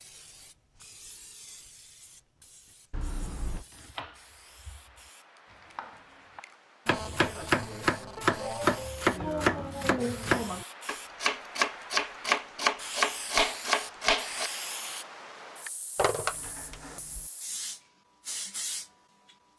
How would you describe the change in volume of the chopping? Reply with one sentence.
The volume of the chopping goes up.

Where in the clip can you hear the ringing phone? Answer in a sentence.
The ringing phone can be heard from 2.9 to 3.6 s, from 6.8 to 8.8 s and from 15.9 to 17.2 s.